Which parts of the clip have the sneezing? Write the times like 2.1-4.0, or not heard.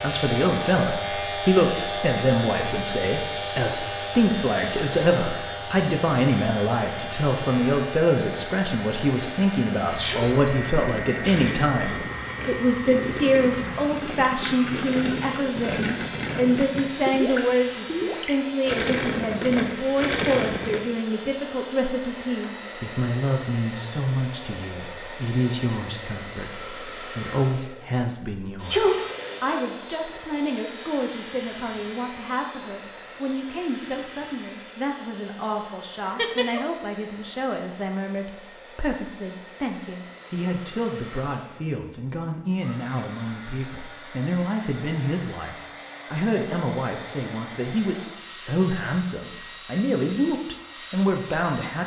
9.1-10.5, 28.7-29.1, 36.0-36.6.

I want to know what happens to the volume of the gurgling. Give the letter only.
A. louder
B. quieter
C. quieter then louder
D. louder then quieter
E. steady
A.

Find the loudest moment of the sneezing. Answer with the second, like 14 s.
29 s.